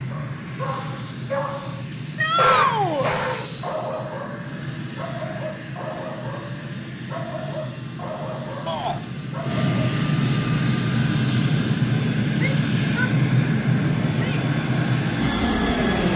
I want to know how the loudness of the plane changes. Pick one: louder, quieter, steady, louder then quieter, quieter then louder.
louder.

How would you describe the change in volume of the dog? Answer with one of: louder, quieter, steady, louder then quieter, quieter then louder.
louder then quieter.